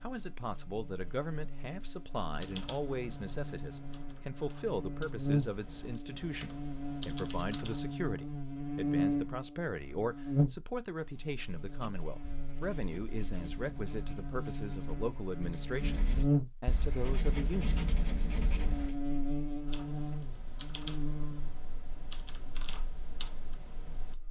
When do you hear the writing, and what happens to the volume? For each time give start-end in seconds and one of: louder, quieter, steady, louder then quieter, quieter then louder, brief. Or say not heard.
11.8-18.9 louder.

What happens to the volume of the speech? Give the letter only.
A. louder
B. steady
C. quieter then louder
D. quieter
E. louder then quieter
B.